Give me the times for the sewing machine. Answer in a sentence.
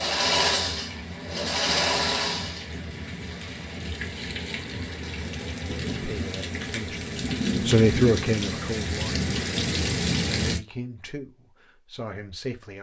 You can hear the sewing machine from 0.0 to 3.8 s.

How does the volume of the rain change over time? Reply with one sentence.
The loudness of the rain goes up.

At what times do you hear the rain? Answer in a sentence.
You can hear the rain from 0.0 to 10.6 s.